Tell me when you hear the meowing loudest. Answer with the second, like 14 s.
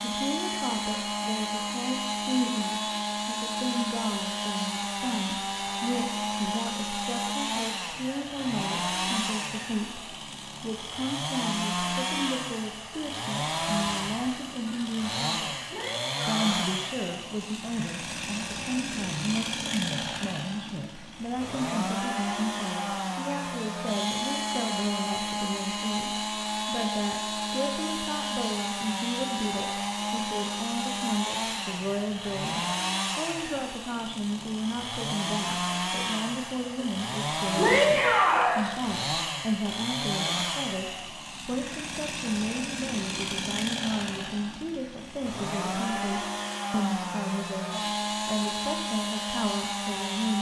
38 s.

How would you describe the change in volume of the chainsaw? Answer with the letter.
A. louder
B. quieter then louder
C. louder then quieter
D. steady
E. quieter
D.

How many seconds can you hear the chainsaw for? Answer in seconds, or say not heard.
50 s.